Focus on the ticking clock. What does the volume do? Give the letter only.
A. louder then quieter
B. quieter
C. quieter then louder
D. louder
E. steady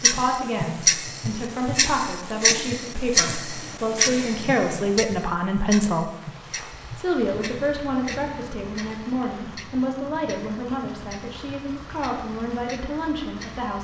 B.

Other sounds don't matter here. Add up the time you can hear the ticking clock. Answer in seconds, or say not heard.
14 s.